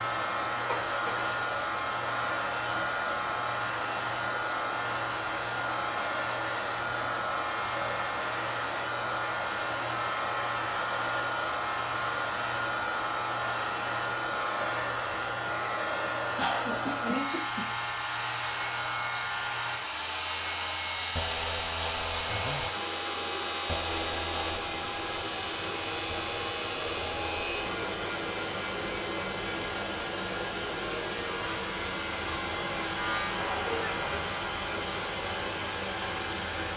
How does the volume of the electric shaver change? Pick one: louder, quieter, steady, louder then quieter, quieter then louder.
steady.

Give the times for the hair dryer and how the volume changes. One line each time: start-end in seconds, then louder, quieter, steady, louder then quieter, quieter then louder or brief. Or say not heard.
0.0-36.7 steady.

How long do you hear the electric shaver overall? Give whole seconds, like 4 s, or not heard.
37 s.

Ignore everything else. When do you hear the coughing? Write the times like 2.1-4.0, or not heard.
0.7-1.2, 16.4-17.6, 33.4-34.0.